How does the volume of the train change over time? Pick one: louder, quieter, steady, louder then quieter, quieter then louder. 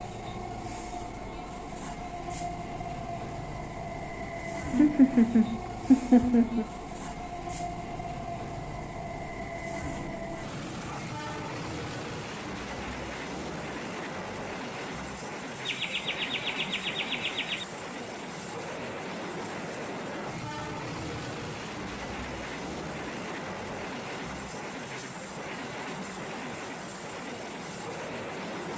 steady.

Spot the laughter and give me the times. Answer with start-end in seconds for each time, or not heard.
4.7-6.7, 15.7-17.6.